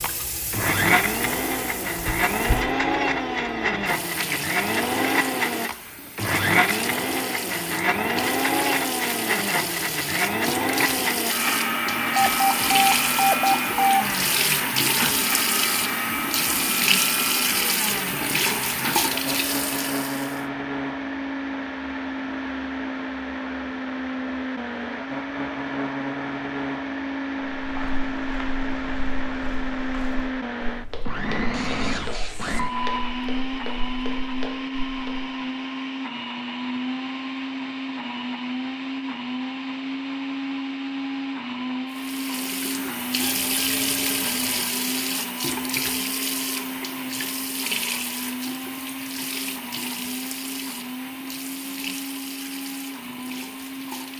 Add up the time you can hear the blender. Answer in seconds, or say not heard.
54 s.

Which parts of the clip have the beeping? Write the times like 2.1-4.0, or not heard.
12.2-14.0, 31.5-33.0, 43.2-44.8.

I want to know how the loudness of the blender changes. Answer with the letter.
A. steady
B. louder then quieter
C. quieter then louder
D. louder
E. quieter
E.